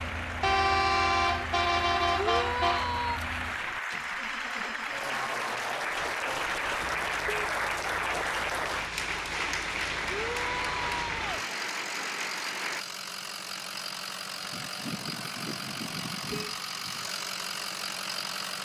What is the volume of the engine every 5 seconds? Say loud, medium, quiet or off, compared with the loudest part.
medium, medium, loud, loud.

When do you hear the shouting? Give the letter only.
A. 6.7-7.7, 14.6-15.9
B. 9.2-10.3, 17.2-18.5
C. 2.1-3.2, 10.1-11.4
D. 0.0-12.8
C.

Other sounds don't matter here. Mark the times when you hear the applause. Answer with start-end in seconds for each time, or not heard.
0.0-12.8.